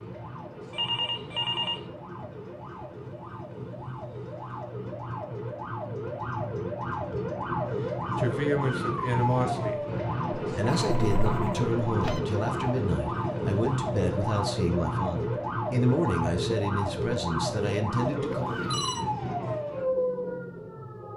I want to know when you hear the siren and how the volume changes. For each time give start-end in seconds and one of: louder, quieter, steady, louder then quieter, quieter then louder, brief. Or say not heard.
0.0-21.1 louder.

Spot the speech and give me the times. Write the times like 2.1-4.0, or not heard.
8.2-9.8, 10.5-18.5.